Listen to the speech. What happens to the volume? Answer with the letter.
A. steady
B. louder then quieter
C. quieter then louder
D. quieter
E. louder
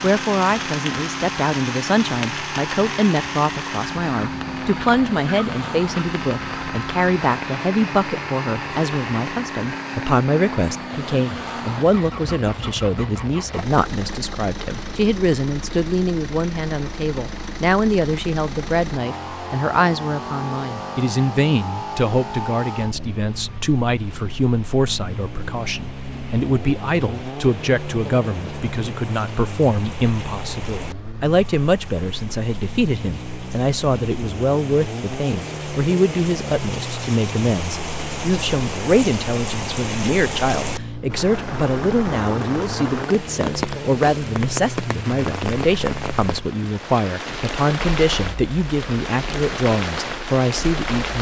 A.